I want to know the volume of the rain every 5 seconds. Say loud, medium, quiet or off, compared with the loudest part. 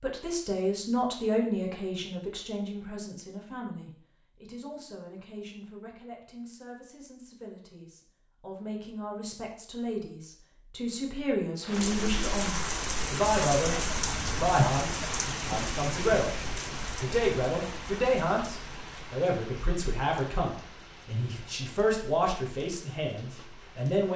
off, off, loud, medium, quiet.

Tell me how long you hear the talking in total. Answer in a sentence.
You can hear the talking for 24 seconds altogether.